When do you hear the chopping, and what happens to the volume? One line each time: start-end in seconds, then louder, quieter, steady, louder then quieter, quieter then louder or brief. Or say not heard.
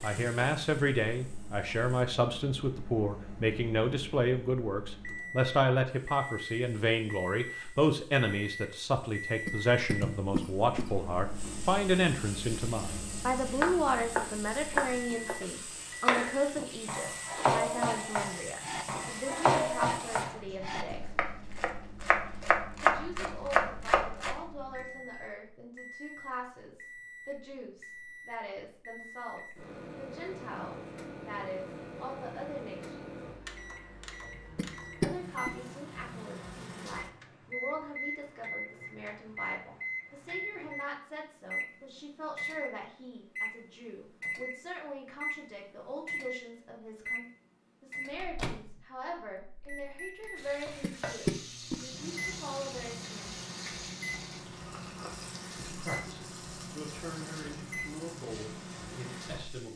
13.6-24.4 quieter then louder.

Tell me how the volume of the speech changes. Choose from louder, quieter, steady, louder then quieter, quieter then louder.
quieter.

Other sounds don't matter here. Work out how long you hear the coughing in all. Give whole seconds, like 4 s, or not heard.
3 s.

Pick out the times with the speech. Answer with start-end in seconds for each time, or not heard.
0.0-21.1, 22.8-33.1, 35.0-53.5, 55.5-59.7.